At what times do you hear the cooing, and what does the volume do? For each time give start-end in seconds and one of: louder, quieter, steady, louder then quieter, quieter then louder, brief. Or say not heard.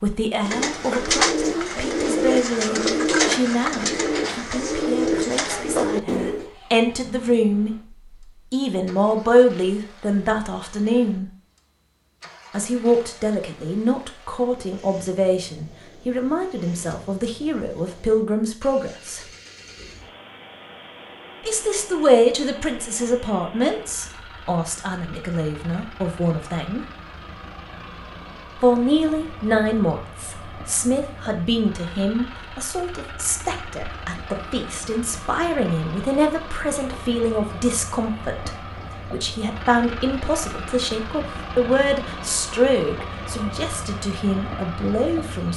0.4-6.5 steady.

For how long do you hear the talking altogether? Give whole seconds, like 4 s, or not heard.
39 s.